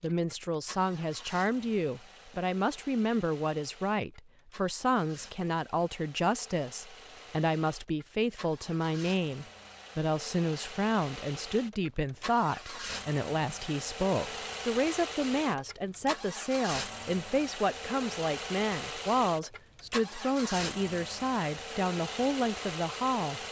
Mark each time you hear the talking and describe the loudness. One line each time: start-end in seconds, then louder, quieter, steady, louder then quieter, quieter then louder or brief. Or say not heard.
0.0-23.4 steady.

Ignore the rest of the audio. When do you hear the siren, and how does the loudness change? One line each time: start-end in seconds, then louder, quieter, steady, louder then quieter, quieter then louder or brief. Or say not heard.
not heard.